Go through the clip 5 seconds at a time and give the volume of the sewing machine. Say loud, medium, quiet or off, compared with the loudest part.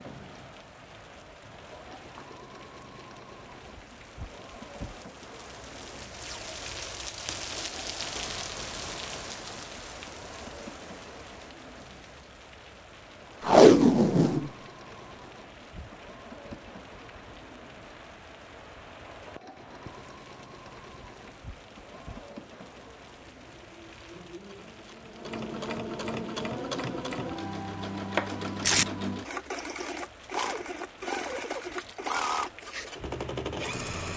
quiet, quiet, quiet, quiet, quiet, loud, loud.